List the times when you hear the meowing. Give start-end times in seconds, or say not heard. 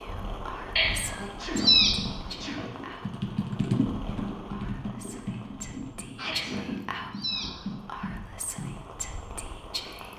0.8-1.9, 6.3-7.5.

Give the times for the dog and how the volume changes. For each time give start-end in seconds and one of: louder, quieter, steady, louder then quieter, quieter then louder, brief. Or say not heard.
not heard.